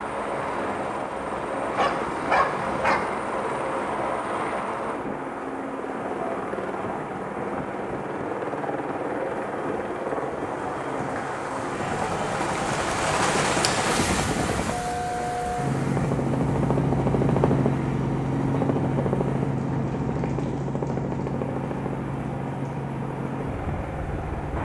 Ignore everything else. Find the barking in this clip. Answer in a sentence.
The barking can be heard from 1.8 to 3.1 s.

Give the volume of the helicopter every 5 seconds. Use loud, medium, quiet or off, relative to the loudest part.
medium, medium, medium, loud, medium.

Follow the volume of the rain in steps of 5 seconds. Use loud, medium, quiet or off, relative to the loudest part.
medium, medium, loud, medium, medium.